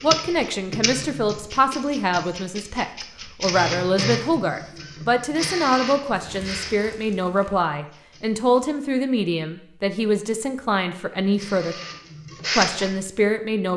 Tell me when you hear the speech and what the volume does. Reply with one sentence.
The speech can be heard from 0.0 to 11.8 s, at a steady volume; and briefly from 12.6 to 13.7 s.